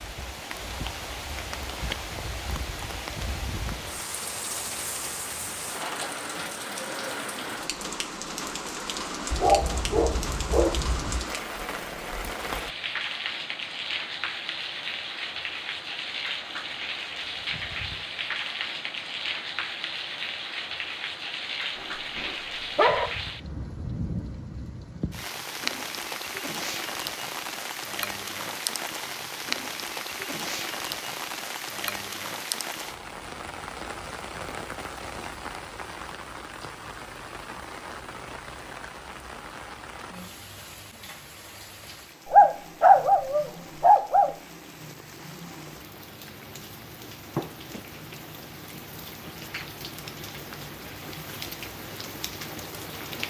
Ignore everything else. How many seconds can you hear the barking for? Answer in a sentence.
The barking can be heard for 5 seconds in total.